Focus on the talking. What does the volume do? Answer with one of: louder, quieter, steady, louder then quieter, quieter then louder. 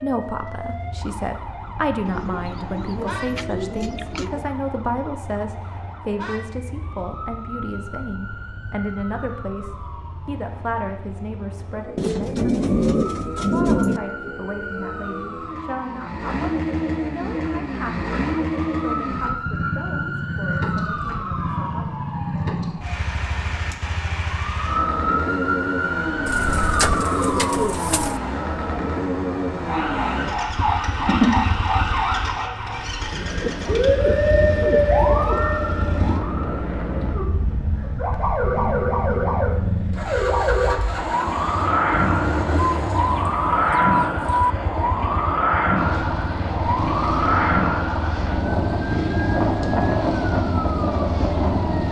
quieter.